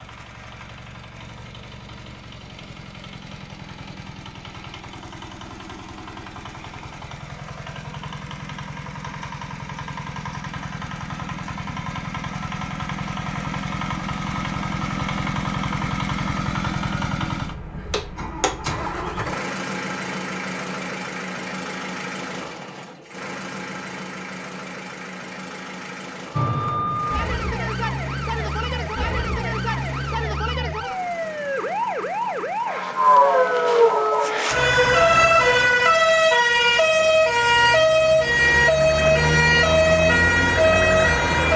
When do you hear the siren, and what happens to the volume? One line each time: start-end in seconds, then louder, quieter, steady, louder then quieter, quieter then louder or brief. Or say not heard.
26.3-41.5 louder.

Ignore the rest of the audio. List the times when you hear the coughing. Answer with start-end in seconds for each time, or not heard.
not heard.